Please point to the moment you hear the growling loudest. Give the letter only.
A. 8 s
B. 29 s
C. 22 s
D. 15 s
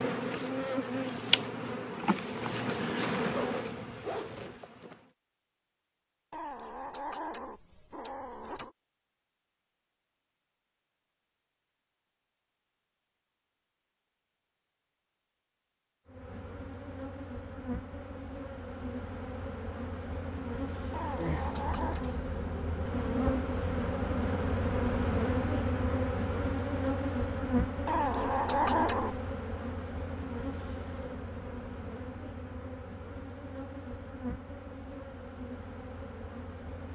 B.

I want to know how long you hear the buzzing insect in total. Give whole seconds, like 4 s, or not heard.
26 s.